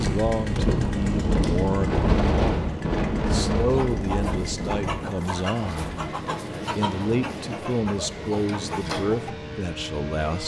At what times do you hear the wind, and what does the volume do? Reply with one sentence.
You can hear the wind from 0.0 to 10.4 s, getting quieter.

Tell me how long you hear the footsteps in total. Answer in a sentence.
The footsteps can't be heard in this clip.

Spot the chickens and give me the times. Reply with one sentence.
You can hear the chickens from 3.6 to 9.3 s.